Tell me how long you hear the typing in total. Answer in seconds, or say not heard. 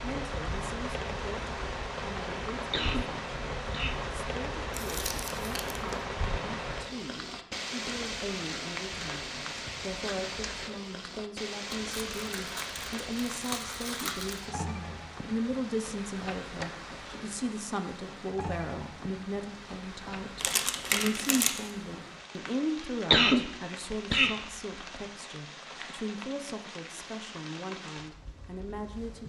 not heard.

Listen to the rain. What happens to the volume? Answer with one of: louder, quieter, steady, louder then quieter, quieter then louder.
quieter.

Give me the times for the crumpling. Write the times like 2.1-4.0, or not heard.
4.7-6.0, 11.7-14.4, 20.4-21.7.